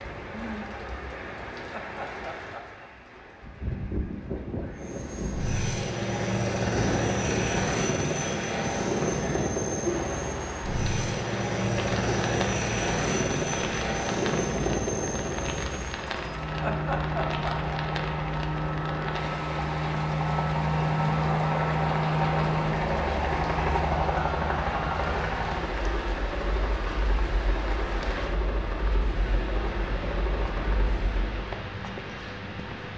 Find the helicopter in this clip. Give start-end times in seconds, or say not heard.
4.8-31.6.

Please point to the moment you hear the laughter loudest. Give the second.
17 s.